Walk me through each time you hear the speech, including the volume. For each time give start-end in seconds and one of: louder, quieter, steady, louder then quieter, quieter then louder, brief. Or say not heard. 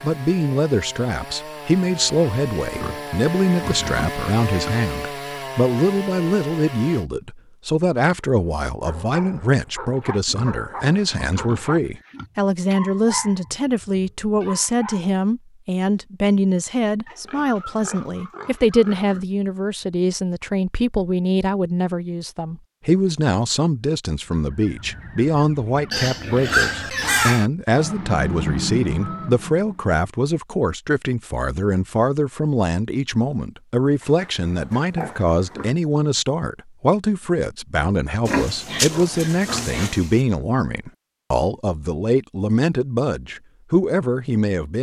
0.0-44.7 steady.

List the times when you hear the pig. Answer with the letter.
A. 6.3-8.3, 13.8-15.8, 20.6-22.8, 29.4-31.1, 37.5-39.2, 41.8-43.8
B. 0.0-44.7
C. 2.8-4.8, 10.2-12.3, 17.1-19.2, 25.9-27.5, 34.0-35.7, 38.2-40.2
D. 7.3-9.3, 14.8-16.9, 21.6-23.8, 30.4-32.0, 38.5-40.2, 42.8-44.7
C.